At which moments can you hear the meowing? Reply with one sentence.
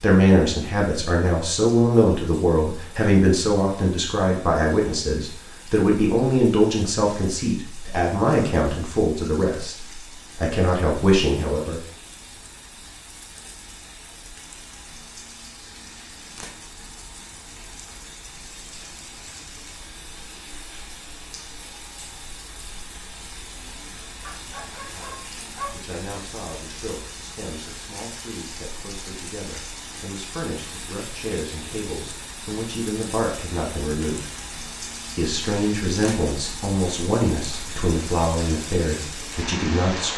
The meowing can't be heard in this clip.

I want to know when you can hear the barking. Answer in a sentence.
The barking can be heard from 24.2 to 25.8 s.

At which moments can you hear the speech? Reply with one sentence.
You can hear the speech from 0.0 to 11.8 s, from 24.8 to 34.3 s and from 35.1 to 40.1 s.